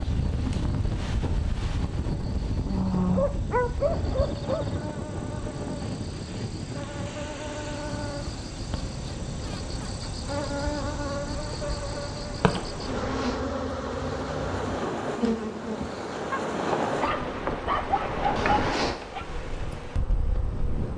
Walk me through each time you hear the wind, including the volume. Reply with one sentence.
You can hear the wind from 0.0 to 20.9 s, getting quieter then louder.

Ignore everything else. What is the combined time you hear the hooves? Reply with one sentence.
The hooves can't be heard in this clip.